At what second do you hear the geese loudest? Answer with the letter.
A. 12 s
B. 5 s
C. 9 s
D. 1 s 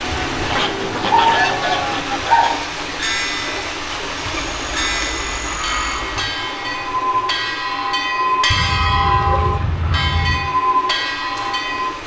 D.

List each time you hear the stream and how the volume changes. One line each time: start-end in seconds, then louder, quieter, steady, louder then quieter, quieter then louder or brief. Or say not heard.
0.0-12.0 quieter.